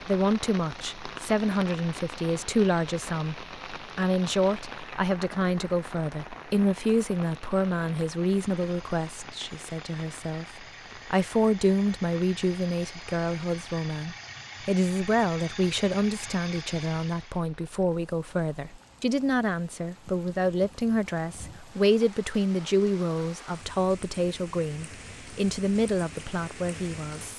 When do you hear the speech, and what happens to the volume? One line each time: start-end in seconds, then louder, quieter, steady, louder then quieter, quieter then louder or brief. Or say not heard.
0.0-27.3 steady.